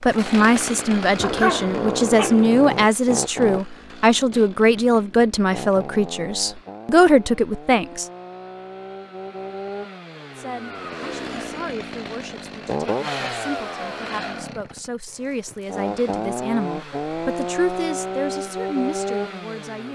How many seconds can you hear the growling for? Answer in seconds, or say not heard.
2 s.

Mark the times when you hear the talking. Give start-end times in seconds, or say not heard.
0.0-8.1, 10.3-19.9.